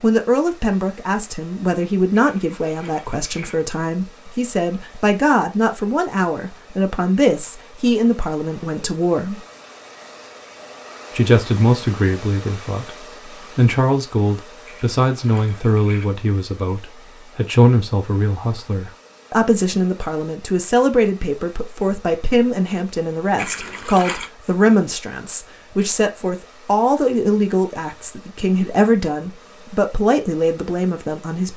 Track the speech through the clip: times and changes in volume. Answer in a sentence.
You can hear the speech from 0.0 to 9.3 s, at a steady volume; and from 11.2 to 31.5 s, at a steady volume.